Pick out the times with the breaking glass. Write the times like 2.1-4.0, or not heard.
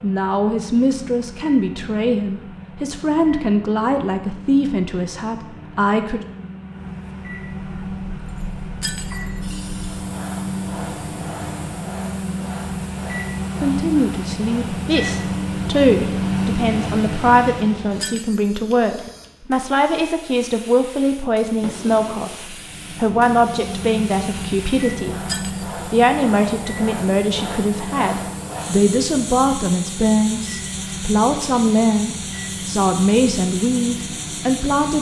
8.8-9.4, 18.0-18.6, 25.2-25.7.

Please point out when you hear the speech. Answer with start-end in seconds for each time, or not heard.
0.0-6.2, 13.6-25.2, 25.9-34.9.